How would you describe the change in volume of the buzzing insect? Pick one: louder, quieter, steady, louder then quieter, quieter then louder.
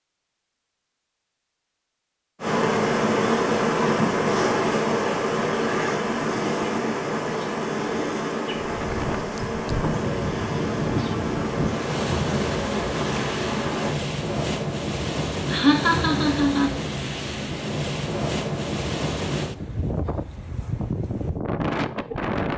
quieter.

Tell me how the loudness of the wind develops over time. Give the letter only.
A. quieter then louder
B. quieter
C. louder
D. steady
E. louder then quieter
D.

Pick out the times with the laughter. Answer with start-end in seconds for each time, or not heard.
15.4-16.8.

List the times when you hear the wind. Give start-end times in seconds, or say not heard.
8.6-22.5.